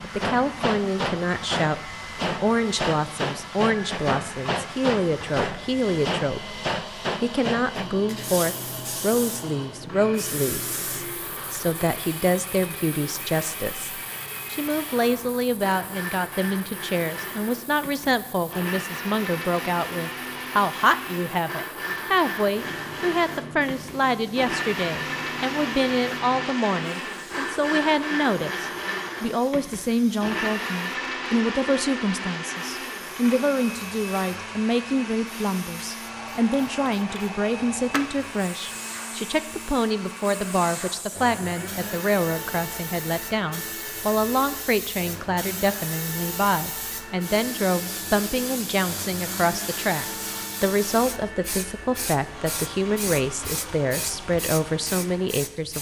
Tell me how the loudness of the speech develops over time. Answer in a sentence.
The volume of the speech stays about the same.